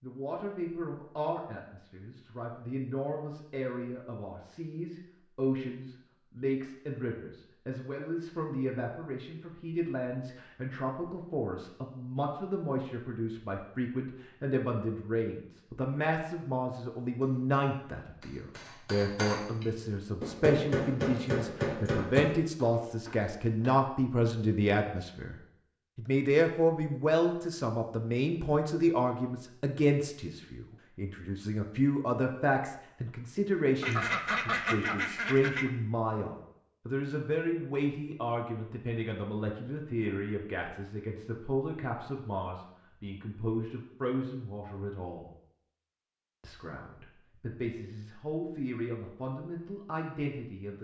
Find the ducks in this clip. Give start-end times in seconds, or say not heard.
33.8-35.7.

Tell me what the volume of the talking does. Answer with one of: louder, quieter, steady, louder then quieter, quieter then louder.
louder then quieter.